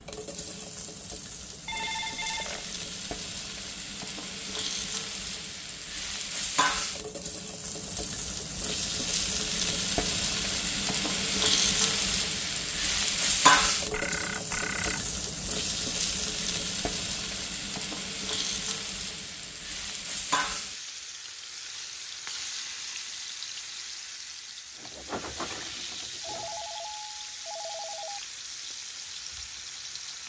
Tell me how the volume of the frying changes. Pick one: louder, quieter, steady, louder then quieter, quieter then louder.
louder then quieter.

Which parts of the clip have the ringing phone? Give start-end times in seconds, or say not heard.
1.6-2.7, 13.9-15.1, 26.2-28.2.